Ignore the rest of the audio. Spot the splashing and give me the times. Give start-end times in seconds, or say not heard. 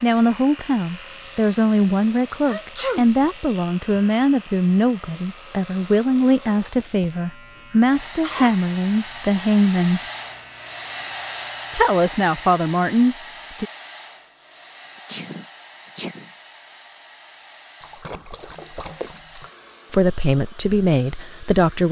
17.8-19.5.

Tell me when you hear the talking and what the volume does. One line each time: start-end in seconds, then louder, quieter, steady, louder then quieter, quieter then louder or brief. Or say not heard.
0.0-10.0 steady
11.7-13.7 brief
19.9-21.8 brief.